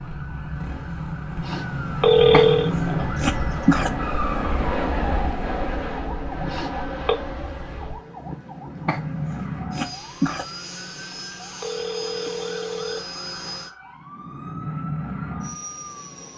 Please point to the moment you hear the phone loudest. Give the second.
2 s.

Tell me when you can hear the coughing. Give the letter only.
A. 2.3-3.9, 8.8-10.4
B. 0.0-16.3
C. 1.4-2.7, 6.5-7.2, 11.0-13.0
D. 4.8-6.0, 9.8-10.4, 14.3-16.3
A.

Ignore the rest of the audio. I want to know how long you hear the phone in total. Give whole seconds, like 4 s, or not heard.
4 s.